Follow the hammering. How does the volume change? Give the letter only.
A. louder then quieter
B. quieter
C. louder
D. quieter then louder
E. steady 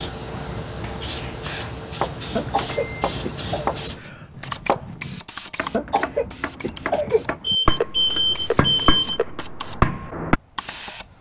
C.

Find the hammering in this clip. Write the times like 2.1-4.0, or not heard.
0.2-10.4.